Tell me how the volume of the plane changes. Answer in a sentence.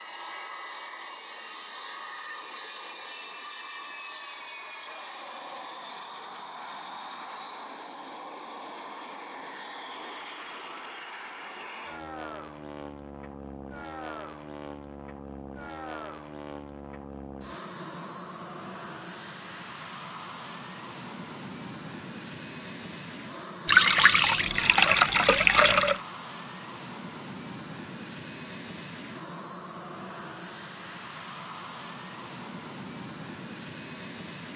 The loudness of the plane stays about the same.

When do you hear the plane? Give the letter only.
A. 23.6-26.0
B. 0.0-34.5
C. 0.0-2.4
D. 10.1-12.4
B.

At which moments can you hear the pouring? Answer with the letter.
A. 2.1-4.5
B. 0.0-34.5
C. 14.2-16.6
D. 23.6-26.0
D.